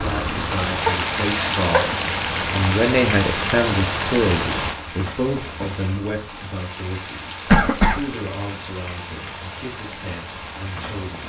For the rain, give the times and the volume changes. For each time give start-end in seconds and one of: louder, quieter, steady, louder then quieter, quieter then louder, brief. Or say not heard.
0.0-11.2 quieter.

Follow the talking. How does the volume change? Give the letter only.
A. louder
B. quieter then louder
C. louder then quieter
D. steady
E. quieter
C.